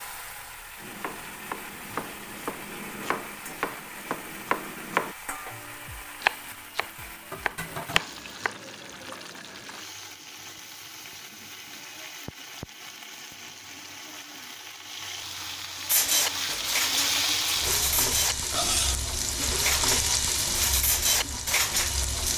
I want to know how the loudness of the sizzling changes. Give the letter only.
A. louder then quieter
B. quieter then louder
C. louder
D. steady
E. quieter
C.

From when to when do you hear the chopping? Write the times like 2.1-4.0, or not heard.
0.8-8.7.